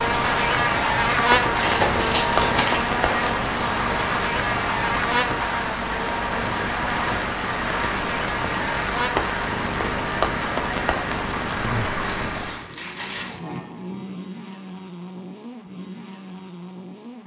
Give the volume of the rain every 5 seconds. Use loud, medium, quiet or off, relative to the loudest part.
loud, loud, loud, off.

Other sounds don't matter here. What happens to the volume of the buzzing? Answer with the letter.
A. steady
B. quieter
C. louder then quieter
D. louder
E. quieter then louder
B.